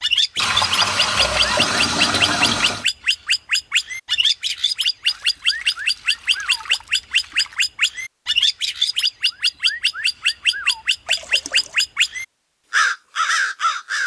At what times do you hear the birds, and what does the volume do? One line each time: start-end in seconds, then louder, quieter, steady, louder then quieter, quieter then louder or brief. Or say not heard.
0.0-14.0 steady.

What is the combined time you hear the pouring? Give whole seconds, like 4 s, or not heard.
6 s.